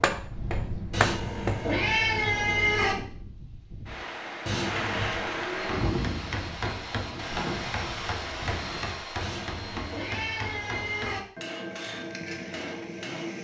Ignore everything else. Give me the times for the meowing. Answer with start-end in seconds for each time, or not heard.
0.9-3.0, 4.5-5.2, 9.2-11.2.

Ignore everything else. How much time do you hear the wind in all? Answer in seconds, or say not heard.
9 s.